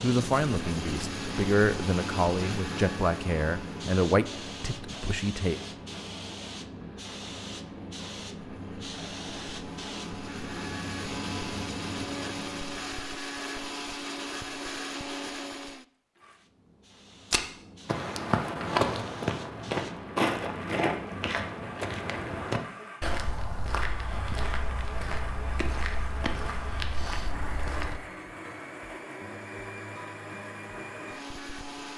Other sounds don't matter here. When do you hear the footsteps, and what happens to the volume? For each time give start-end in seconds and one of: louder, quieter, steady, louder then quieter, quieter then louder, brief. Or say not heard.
17.3-28.0 quieter.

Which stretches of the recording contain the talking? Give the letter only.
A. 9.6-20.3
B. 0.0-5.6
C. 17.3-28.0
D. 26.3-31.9
B.